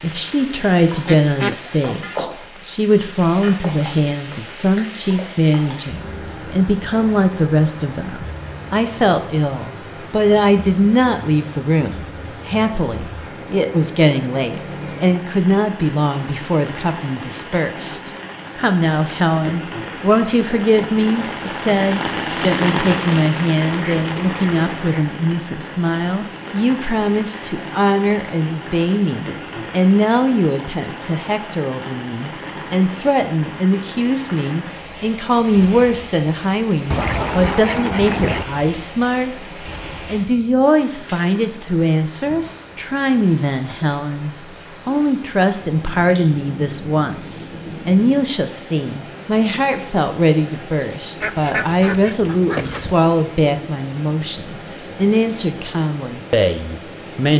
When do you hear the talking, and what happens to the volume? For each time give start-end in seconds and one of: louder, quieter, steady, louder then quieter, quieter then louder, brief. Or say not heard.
0.0-39.4 steady
40.0-57.3 steady.